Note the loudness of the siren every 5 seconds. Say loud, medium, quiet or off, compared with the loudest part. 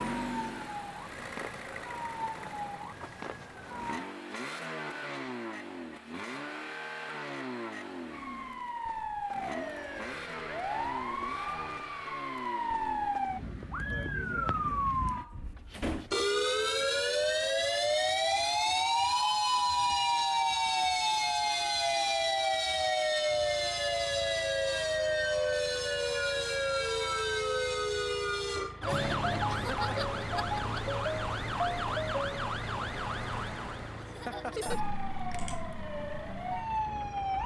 quiet, medium, medium, loud, loud, loud, medium, medium.